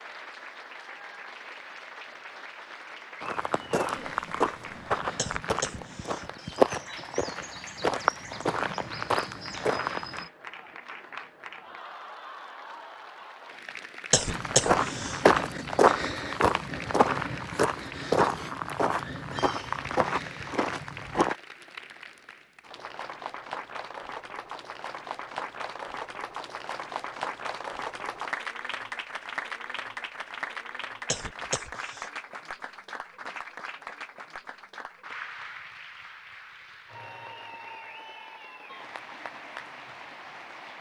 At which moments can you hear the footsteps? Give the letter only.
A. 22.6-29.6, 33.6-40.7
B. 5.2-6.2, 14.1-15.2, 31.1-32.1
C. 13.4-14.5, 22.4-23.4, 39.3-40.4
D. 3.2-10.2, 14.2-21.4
D.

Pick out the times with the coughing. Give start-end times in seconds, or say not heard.
5.2-6.2, 14.1-15.2, 31.1-32.1.